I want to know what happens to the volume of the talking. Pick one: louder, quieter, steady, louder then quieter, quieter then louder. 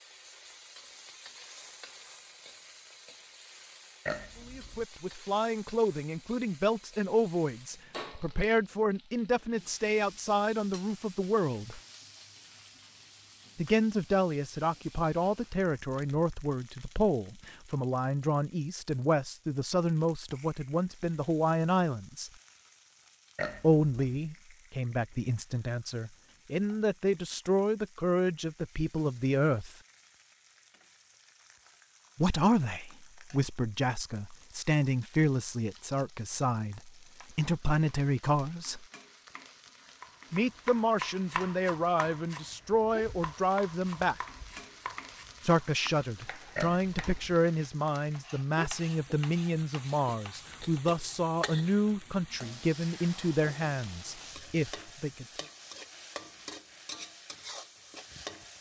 steady.